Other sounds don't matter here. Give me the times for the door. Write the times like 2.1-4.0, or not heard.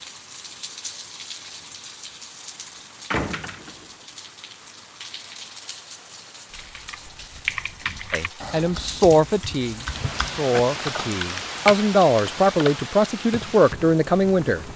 3.1-3.9.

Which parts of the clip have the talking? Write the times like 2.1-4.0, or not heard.
8.1-14.7.